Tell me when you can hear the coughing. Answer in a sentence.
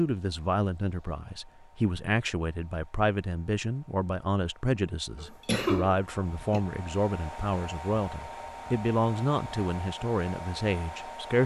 You can hear the coughing from 5.2 to 6.6 s.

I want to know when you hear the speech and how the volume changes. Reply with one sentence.
You can hear the speech from 0.0 to 11.4 s, at a steady volume.